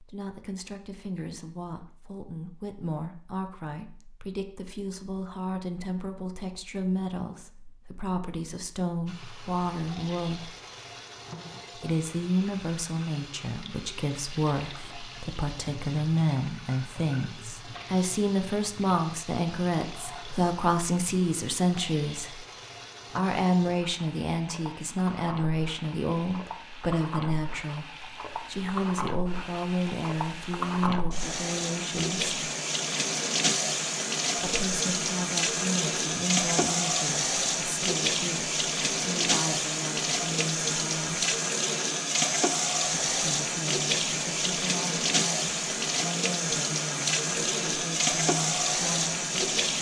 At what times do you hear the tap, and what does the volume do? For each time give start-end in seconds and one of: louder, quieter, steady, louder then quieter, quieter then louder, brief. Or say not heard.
9.1-49.7 louder.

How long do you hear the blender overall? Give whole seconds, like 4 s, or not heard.
not heard.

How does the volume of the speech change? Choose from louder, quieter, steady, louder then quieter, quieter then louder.
louder then quieter.